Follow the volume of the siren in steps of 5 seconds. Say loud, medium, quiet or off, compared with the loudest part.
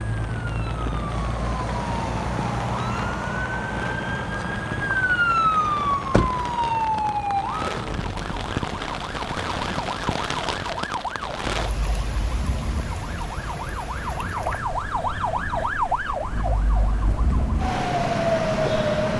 loud, loud, medium, loud.